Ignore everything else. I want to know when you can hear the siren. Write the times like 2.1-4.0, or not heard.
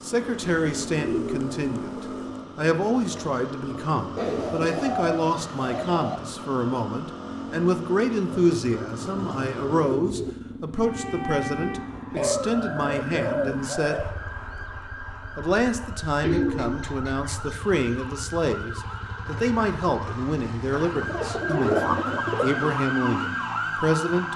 10.8-24.3.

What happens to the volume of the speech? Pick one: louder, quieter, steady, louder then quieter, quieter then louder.
steady.